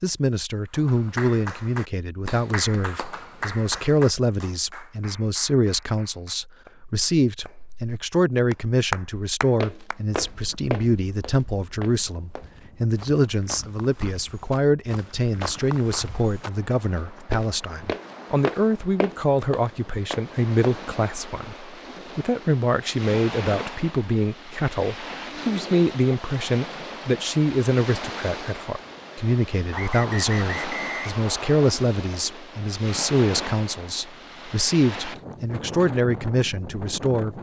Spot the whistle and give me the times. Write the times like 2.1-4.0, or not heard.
29.7-31.8.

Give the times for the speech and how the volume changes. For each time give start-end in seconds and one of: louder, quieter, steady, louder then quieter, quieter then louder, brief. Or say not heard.
0.0-37.3 steady.